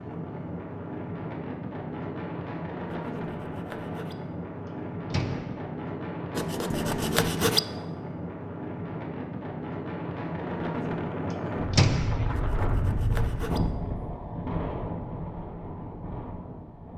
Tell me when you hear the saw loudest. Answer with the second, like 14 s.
7 s.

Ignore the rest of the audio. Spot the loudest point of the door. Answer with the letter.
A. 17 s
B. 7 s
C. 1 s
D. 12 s
D.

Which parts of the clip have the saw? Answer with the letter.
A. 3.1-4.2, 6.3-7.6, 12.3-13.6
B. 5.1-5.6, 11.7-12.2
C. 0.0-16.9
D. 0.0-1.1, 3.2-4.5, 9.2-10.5
A.